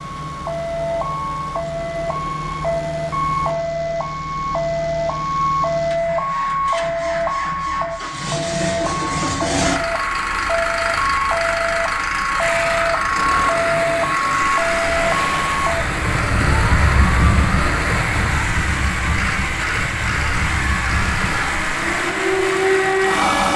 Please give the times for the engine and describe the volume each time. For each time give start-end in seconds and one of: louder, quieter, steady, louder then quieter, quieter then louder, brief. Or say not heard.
0.0-23.5 louder.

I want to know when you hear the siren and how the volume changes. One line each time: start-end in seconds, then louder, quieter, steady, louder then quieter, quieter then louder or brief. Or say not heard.
0.0-23.5 steady.